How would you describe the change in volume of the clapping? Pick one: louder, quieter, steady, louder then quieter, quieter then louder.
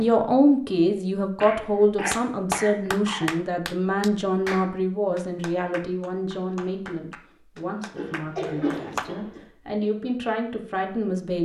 quieter.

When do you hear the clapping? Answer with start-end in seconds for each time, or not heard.
2.1-9.1.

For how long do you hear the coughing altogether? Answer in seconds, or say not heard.
3 s.